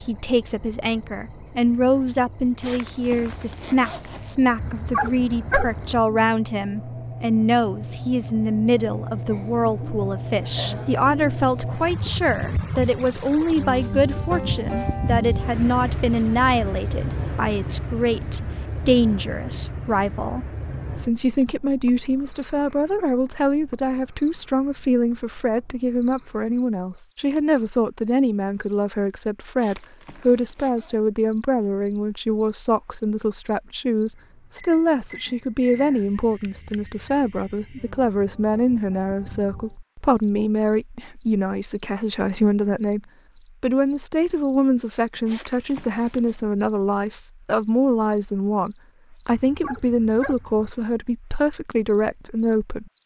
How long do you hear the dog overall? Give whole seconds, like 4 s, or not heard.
3 s.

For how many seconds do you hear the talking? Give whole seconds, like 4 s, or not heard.
52 s.